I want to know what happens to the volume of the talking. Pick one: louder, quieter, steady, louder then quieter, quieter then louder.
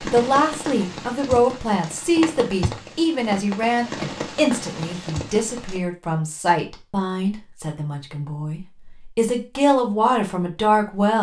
quieter then louder.